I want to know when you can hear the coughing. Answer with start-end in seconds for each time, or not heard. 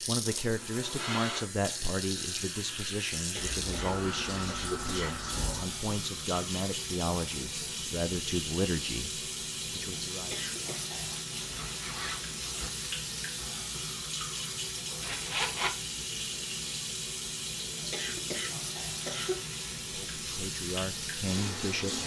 3.1-5.1, 10.1-10.8, 17.7-19.4.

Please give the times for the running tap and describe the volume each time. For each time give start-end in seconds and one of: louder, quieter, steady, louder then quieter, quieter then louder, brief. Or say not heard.
0.0-22.0 steady.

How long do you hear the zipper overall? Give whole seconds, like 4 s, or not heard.
3 s.